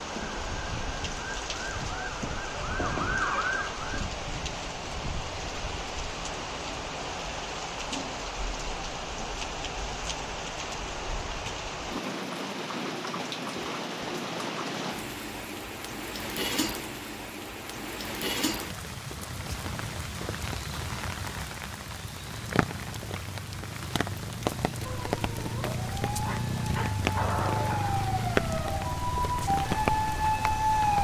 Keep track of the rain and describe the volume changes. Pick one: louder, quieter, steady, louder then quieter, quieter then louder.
steady.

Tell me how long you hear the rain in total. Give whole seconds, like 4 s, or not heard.
31 s.